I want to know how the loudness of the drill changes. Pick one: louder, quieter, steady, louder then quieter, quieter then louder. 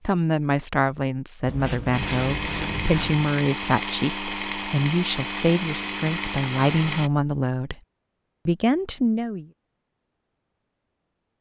steady.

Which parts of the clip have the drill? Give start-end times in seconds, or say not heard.
1.9-7.1.